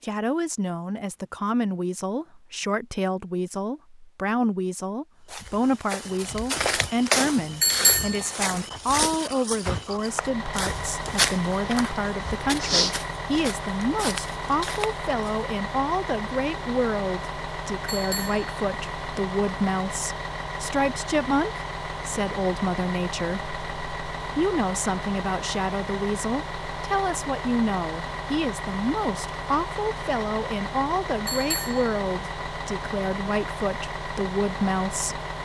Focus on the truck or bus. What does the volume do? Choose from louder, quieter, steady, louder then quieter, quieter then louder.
steady.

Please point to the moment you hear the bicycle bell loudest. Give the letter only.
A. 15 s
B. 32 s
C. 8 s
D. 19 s
C.